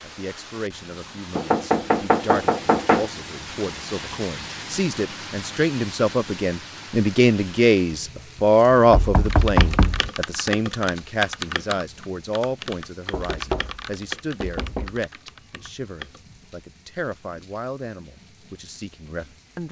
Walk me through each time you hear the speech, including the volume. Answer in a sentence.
You can hear the speech from 0.0 to 19.6 s, getting louder then quieter.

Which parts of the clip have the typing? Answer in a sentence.
The typing can be heard from 9.2 to 16.2 s.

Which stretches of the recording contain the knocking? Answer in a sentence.
You can hear the knocking from 1.4 to 3.1 s, from 8.9 to 10.1 s, from 13.1 to 13.8 s and from 14.4 to 14.9 s.